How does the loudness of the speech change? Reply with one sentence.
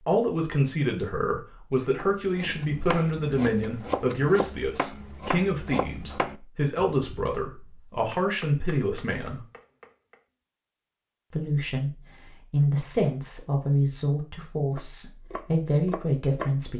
The volume of the speech stays about the same.